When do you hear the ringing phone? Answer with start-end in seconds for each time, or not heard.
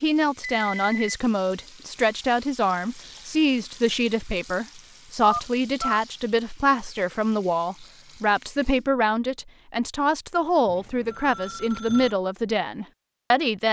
0.6-1.1, 5.2-6.0, 10.7-12.2.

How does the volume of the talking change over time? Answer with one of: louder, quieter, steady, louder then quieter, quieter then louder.
steady.